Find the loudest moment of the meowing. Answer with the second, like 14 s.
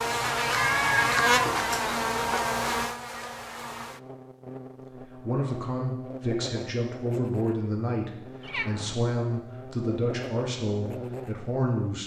1 s.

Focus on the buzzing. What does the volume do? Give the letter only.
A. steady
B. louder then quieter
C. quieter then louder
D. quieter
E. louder
D.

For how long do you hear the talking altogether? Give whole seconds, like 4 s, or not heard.
7 s.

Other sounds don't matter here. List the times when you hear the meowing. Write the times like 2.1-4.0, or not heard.
0.6-2.4, 8.4-8.9.